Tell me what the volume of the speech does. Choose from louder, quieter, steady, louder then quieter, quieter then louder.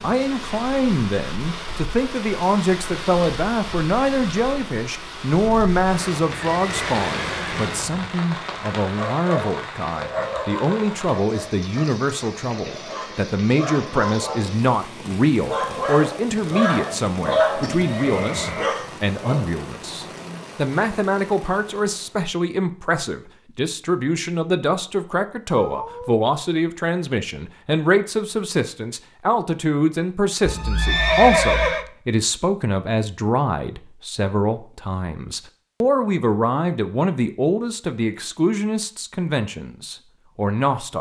steady.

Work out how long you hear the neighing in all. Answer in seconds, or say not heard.
4 s.